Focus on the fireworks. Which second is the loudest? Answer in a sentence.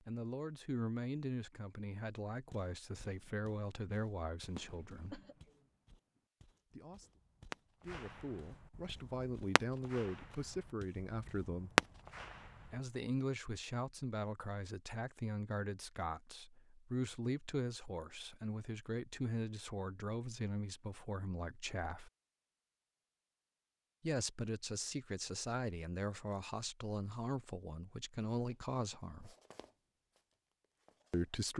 The volume of the fireworks peaks at 12 seconds.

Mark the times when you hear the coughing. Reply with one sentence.
You can hear the coughing from 4.8 to 5.7 s.